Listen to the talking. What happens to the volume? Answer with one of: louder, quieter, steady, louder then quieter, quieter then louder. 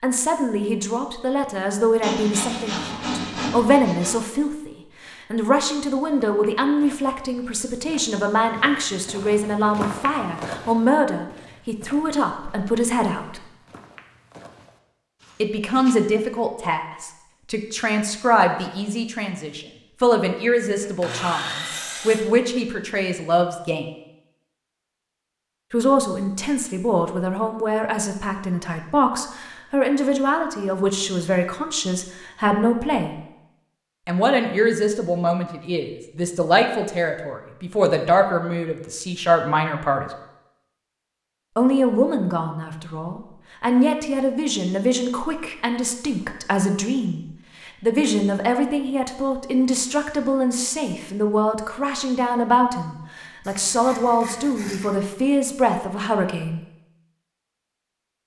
steady.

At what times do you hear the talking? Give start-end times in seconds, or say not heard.
0.0-13.4, 15.4-23.9, 25.7-33.1, 34.0-40.1, 41.5-56.6.